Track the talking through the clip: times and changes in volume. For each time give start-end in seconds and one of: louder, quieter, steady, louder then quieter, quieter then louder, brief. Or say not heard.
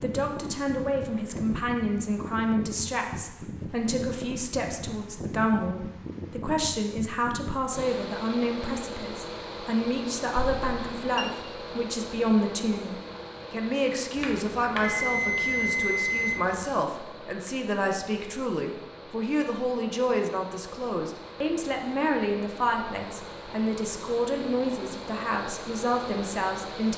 0.0-26.9 steady.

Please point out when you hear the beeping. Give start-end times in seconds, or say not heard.
10.3-11.2, 14.2-16.6.